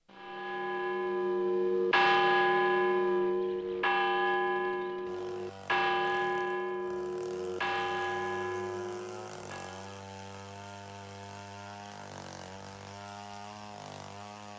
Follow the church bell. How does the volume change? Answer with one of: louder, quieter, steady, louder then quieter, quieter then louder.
quieter.